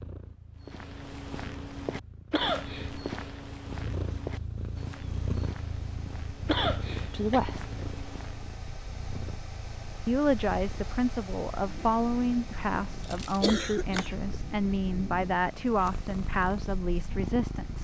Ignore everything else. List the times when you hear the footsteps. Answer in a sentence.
The footsteps can be heard from 0.6 to 8.6 s.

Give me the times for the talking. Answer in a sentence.
The talking can be heard from 7.1 to 7.7 s and from 10.1 to 17.7 s.